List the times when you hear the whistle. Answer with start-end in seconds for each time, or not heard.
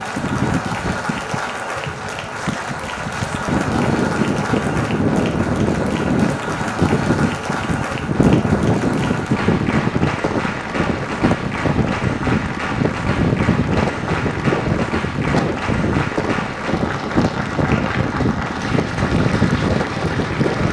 not heard.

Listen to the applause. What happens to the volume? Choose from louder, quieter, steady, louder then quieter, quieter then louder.
steady.